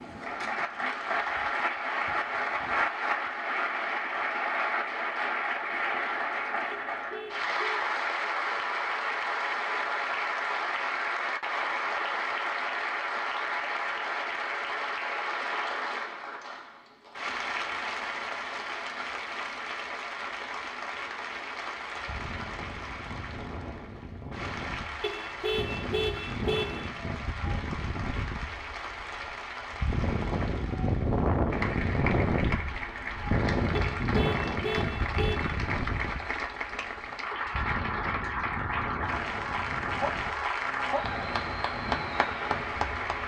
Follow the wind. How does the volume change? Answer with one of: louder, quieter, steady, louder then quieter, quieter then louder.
louder then quieter.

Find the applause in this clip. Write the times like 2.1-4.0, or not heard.
0.0-43.2.